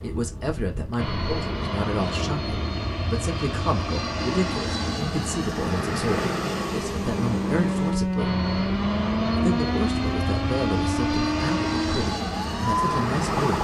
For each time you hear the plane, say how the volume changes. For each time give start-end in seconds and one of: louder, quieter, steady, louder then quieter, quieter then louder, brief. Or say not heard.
0.0-13.5 steady.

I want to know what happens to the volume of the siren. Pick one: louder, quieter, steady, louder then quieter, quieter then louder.
steady.